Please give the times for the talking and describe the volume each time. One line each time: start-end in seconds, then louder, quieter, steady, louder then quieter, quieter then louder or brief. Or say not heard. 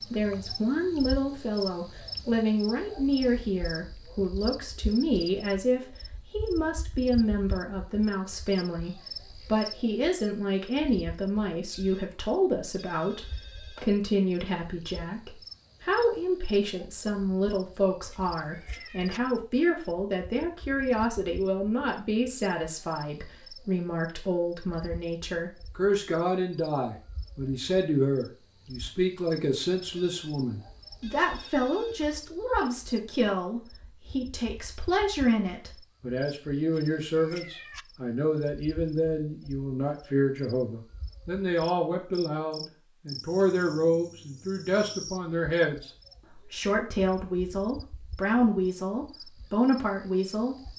0.1-50.5 steady.